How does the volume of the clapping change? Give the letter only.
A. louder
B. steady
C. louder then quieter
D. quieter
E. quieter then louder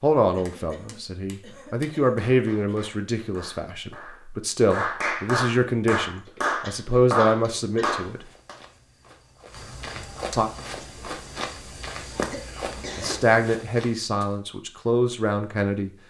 A.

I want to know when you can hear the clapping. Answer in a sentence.
The clapping can be heard from 0.5 to 8.6 s.